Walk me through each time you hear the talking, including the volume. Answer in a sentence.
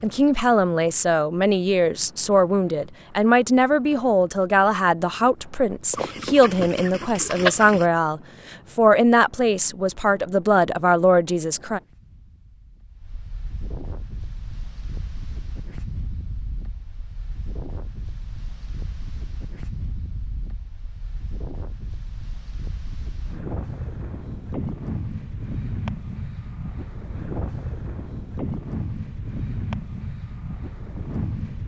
You can hear the talking from 0.0 to 11.8 s, at a steady volume.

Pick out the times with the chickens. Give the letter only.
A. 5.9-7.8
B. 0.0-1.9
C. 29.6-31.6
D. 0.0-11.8
A.